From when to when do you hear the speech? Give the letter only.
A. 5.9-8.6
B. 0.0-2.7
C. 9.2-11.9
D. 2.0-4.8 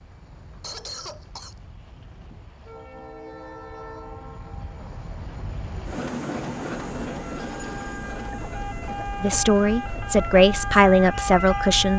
C.